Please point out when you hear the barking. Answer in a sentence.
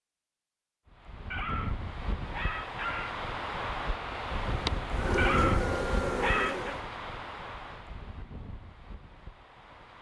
The barking can be heard from 1.3 to 3.2 s and from 5.2 to 6.8 s.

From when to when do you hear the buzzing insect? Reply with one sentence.
The buzzing insect can be heard from 4.3 to 6.8 s.